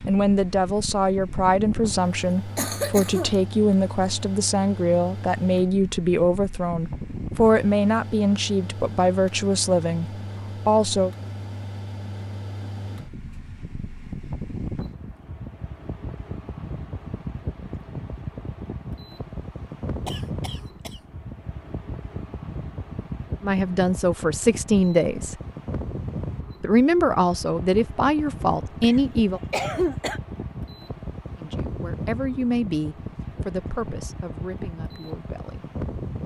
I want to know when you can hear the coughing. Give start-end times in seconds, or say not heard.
2.0-3.4, 20.1-21.0, 28.8-30.2.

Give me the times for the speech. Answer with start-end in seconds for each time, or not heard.
0.1-11.1, 23.4-25.4, 26.6-29.4, 31.4-35.7.